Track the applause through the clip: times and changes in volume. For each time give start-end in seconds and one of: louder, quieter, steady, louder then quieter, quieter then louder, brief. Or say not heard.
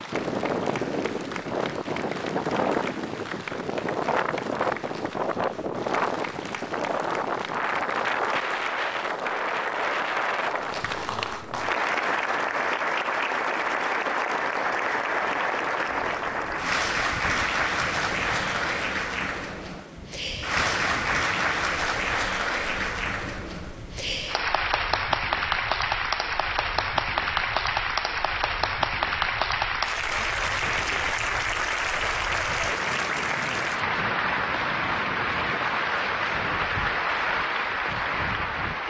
0.0-38.8 louder.